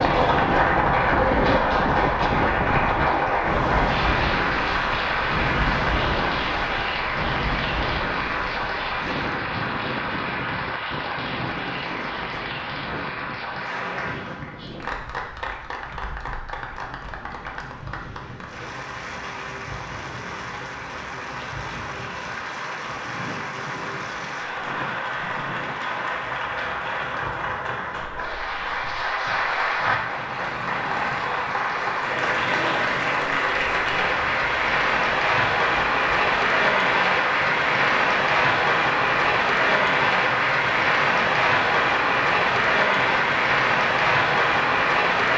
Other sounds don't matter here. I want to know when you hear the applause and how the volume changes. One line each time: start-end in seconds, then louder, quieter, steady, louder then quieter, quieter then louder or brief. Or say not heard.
0.0-45.3 quieter then louder.